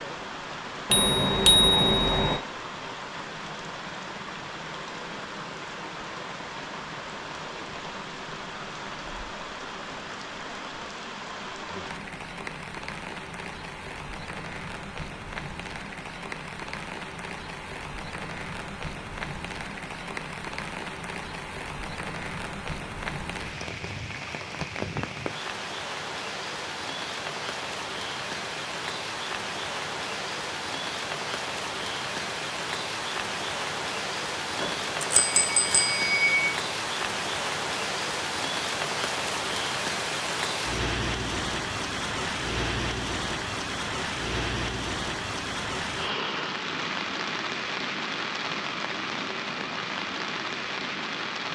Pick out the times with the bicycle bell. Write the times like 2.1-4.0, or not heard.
0.9-2.4, 34.6-36.5.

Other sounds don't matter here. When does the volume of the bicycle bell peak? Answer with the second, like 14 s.
2 s.